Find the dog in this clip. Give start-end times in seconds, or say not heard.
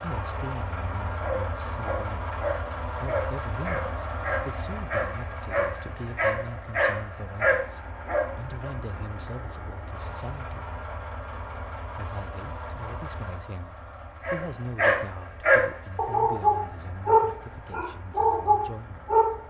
1.2-8.7, 14.2-19.4.